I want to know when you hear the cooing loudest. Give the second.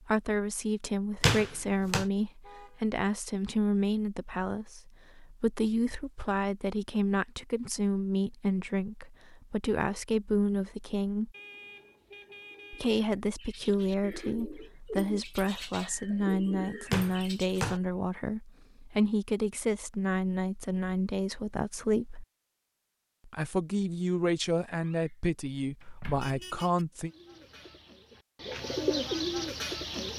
29 s.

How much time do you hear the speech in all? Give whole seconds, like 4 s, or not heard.
25 s.